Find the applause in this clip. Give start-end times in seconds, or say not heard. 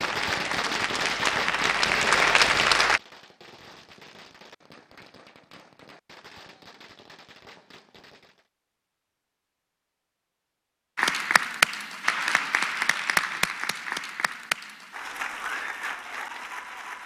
0.0-3.0, 10.9-17.0.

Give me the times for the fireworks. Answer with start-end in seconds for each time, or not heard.
0.0-8.4.